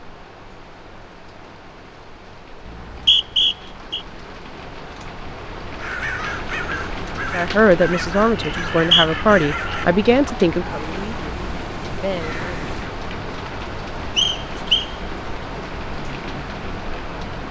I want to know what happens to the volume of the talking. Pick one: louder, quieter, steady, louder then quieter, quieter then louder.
quieter.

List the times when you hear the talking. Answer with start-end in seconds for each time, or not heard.
7.3-12.6.